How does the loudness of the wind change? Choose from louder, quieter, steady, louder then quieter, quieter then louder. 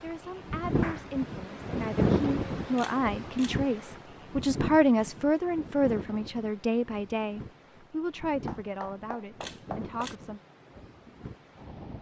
quieter.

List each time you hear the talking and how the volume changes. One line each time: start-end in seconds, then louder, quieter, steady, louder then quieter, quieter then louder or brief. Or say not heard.
0.0-10.4 louder then quieter.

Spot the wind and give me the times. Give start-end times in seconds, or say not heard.
0.0-11.9.